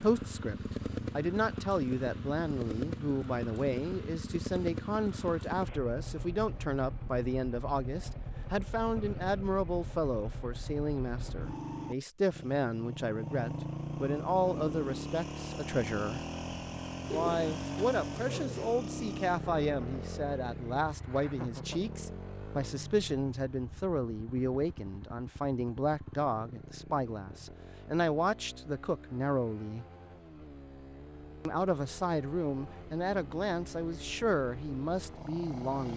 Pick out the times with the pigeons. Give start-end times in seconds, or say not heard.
17.1-18.8.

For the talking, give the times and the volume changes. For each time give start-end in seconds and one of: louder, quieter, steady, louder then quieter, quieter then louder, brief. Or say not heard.
0.0-16.2 steady
17.1-29.9 steady
31.4-35.9 steady.